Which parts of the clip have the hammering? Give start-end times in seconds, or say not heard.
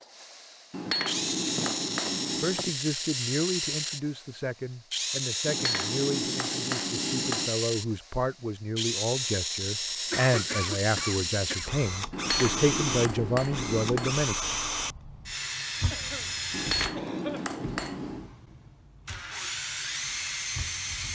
0.7-2.6, 5.5-7.5, 12.1-14.2, 16.5-18.3.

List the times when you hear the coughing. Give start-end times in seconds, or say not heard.
1.6-2.8, 10.1-11.7, 15.9-17.6.